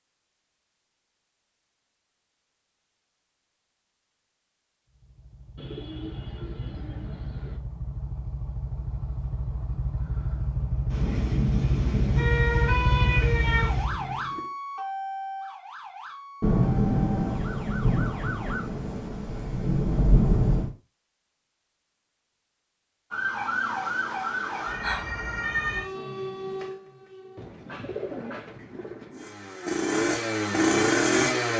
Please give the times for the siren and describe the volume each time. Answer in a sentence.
You can hear the siren from 12.2 to 18.6 s, getting quieter; and from 23.1 to 27.5 s, getting quieter.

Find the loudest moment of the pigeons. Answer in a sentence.
The loudest moment of the pigeons is at 28 seconds.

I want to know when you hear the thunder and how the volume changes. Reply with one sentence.
You can hear the thunder briefly from 10.9 to 13.8 s; and from 16.4 to 20.7 s, getting quieter then louder.